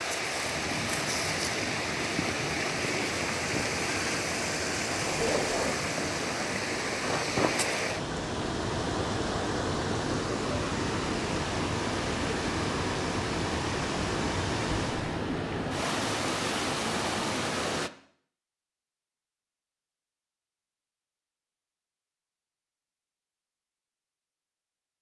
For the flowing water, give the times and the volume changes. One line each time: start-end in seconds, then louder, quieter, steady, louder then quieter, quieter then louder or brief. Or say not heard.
0.0-17.9 steady.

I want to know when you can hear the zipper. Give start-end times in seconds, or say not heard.
5.0-5.8.